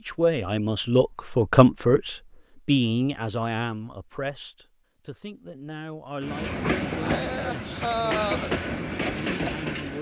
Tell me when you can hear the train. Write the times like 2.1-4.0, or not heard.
6.2-9.9.